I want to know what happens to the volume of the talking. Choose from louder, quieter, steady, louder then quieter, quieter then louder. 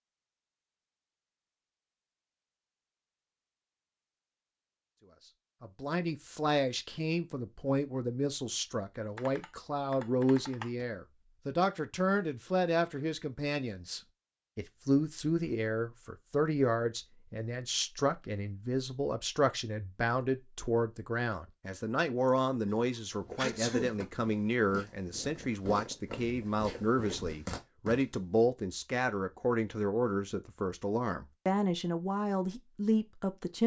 steady.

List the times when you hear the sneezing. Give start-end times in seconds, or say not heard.
22.8-24.0.